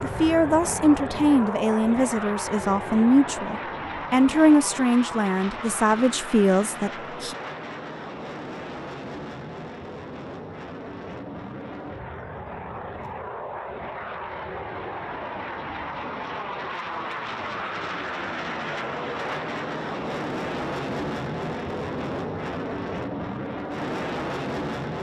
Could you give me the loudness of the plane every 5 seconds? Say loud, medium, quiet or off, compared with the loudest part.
loud, medium, medium, loud, loud.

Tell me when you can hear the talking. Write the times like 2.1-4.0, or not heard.
0.0-7.3.